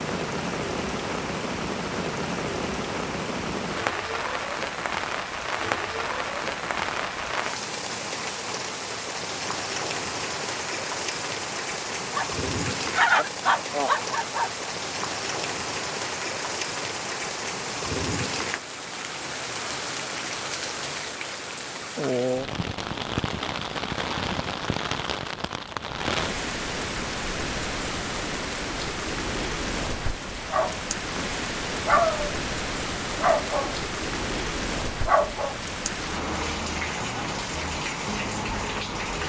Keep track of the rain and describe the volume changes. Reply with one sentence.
The loudness of the rain stays about the same.